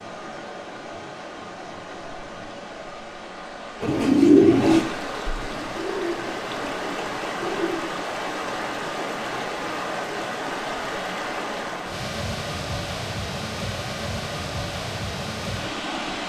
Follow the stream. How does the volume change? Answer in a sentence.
The volume of the stream goes up.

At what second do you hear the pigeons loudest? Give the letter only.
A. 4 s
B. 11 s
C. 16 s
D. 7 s
A.